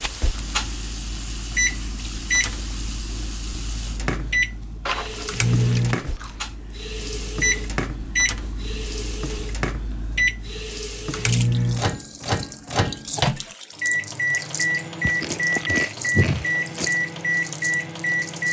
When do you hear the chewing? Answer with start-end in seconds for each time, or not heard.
4.8-6.5, 15.0-16.9.